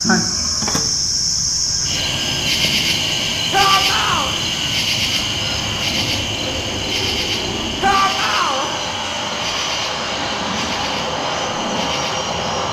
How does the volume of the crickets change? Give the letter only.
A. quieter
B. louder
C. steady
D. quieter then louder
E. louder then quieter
A.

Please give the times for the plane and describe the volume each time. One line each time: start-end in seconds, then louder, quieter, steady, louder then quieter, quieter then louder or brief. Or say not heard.
0.2-12.6 louder.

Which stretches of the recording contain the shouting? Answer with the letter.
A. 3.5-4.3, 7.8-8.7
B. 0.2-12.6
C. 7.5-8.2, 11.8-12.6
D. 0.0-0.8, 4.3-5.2
A.